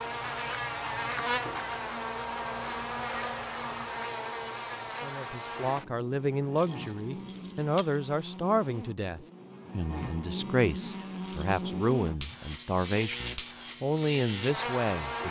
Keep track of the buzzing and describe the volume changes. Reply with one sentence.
The volume of the buzzing goes down, then up.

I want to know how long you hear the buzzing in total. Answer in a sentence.
You can hear the buzzing for 15 seconds altogether.